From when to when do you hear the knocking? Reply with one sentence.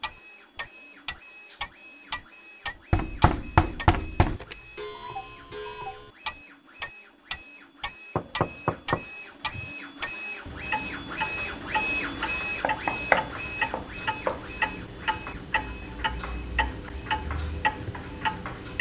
The knocking can be heard from 2.9 to 4.4 s, from 8.2 to 9.8 s and from 12.6 to 14.4 s.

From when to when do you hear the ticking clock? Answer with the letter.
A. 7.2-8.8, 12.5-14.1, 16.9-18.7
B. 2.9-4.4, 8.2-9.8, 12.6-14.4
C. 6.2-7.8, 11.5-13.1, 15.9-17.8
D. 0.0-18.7
D.